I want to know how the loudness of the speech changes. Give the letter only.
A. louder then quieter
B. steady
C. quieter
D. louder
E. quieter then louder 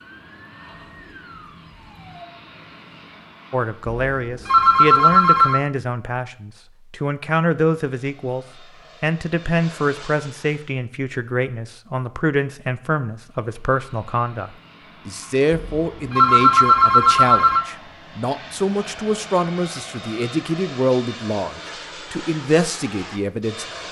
B.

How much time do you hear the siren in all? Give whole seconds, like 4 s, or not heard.
2 s.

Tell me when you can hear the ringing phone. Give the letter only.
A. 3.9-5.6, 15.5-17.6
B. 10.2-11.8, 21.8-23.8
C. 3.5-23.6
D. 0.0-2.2
A.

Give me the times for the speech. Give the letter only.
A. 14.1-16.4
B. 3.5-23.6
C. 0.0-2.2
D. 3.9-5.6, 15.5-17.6
B.